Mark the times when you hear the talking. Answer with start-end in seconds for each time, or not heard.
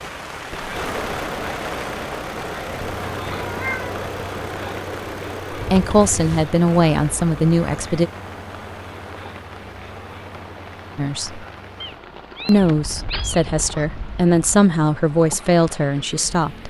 5.5-8.1, 10.9-11.4, 12.4-16.6.